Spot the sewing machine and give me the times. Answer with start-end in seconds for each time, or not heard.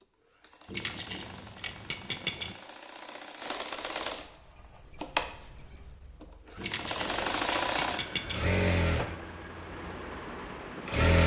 0.0-11.2.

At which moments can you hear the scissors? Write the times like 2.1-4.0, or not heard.
0.7-2.5, 6.5-8.4.